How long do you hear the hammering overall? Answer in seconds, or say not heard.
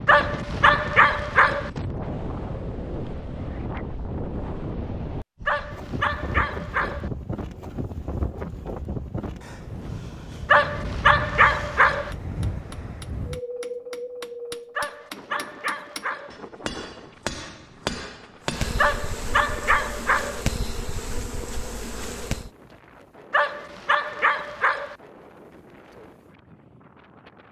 7 s.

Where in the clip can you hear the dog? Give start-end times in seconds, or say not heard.
0.1-1.7, 5.5-7.1, 10.4-12.1, 14.8-16.4, 18.8-20.4, 23.3-24.9.